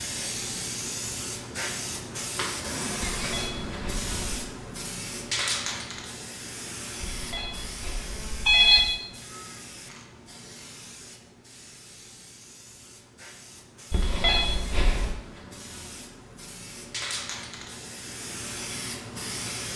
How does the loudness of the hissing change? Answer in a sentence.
The volume of the hissing goes down, then up.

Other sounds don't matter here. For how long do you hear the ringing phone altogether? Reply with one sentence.
The ringing phone can be heard for 4 seconds in total.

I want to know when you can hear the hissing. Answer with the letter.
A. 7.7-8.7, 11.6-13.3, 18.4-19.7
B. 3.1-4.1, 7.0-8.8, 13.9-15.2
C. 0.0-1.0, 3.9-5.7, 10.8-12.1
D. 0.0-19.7
D.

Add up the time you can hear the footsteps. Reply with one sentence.
You can't hear the footsteps here.